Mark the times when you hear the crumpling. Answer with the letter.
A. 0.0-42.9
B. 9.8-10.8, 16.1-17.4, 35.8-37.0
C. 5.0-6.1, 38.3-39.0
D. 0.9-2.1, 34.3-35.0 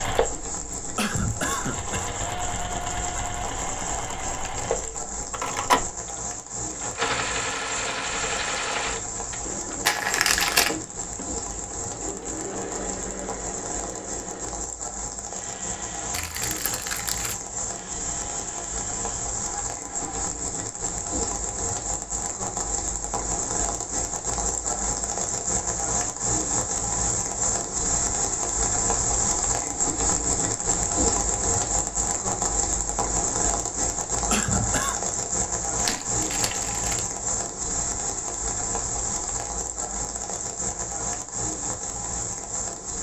B.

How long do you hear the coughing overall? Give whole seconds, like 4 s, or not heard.
2 s.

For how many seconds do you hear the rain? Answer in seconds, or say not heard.
43 s.